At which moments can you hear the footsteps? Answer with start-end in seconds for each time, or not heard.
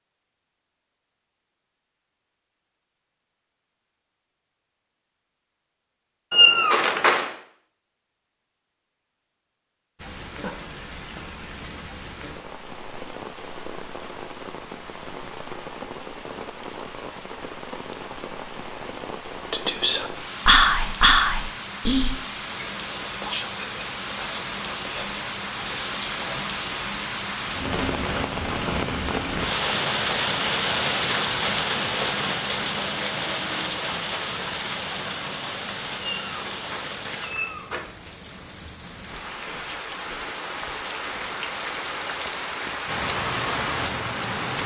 not heard.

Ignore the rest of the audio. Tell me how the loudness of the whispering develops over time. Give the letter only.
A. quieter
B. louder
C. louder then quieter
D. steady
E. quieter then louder
A.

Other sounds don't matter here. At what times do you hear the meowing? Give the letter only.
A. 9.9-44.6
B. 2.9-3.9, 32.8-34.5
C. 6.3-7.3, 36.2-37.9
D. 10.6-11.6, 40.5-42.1
C.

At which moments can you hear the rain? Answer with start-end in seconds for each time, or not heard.
9.9-44.6.